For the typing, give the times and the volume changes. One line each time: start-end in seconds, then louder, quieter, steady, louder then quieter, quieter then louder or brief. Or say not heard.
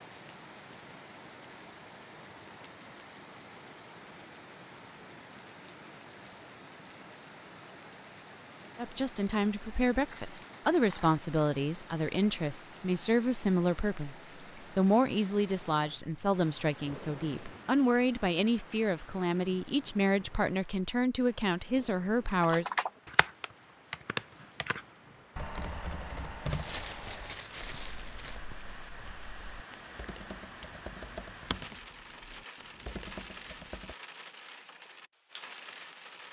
22.4-34.0 quieter then louder.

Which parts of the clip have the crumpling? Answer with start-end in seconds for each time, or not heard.
9.9-11.2, 26.4-28.4.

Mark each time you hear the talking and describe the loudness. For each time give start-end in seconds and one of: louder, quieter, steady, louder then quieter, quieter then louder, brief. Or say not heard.
8.8-22.6 steady.